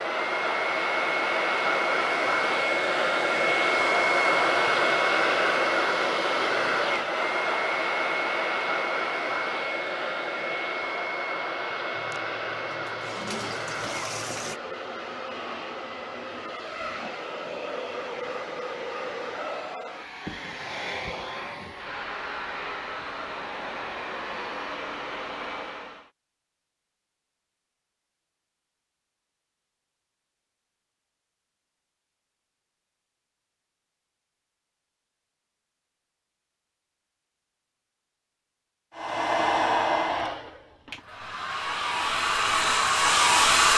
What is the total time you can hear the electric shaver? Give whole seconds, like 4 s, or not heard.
not heard.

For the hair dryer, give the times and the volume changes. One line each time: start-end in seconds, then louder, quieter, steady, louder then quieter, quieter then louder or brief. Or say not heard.
0.0-26.1 quieter
39.0-43.7 quieter then louder.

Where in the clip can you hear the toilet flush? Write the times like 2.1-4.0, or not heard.
11.9-14.6.